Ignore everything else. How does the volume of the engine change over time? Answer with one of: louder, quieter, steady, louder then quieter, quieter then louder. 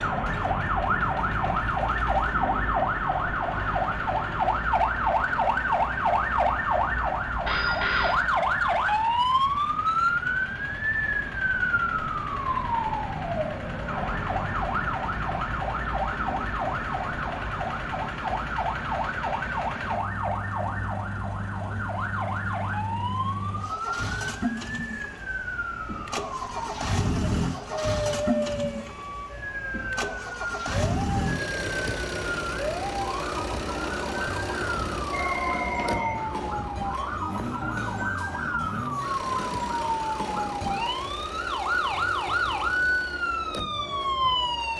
louder then quieter.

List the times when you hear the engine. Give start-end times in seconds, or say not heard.
0.0-44.7.